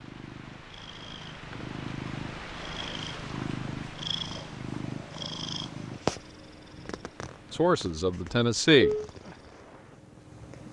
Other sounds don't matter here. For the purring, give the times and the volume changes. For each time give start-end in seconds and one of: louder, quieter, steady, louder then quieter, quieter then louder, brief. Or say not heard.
0.0-10.6 louder then quieter.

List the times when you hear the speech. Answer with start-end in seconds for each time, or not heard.
7.5-8.9.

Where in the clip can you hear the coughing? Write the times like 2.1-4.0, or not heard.
not heard.